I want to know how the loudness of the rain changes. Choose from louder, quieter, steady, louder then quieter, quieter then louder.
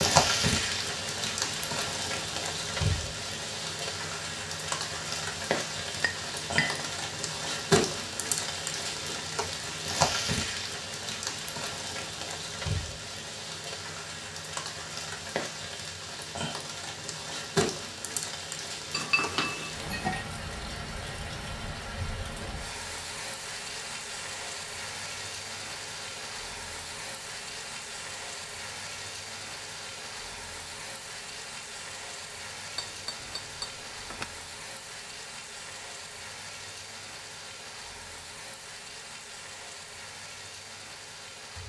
quieter.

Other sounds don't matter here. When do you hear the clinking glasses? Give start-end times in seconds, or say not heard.
6.0-6.8, 18.9-20.2, 32.8-34.2.